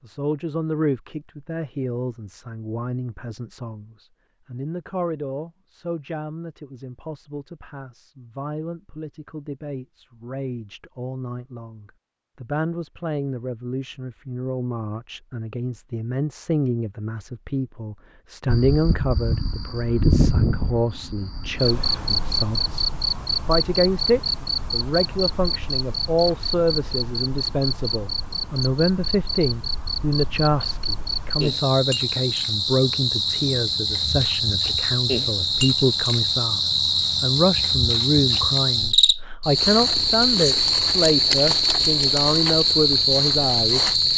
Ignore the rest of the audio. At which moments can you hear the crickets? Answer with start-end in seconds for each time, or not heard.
18.4-44.1.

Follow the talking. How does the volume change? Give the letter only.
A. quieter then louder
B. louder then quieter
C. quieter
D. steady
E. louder
E.